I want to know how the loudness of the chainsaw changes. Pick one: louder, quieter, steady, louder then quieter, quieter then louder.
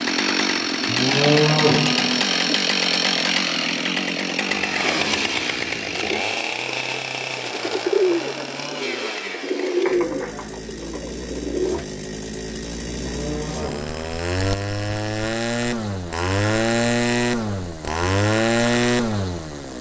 quieter then louder.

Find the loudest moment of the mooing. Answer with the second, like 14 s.
1 s.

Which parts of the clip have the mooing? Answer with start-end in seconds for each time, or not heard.
0.8-2.2, 12.9-14.1.